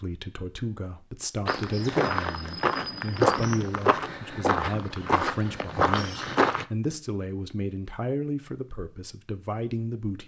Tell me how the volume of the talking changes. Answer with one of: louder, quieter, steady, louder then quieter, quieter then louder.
steady.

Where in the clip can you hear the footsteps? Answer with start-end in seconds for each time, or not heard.
1.4-6.7.